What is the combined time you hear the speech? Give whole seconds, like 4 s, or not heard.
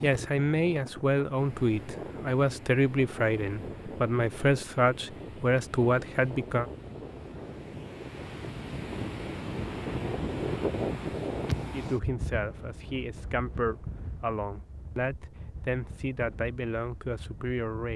13 s.